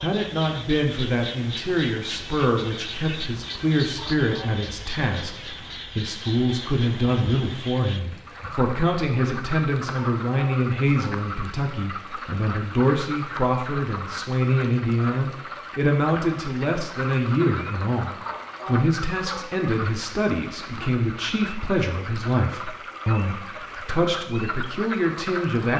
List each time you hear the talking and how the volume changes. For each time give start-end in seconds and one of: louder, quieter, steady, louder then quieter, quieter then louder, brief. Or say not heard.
0.0-25.7 steady.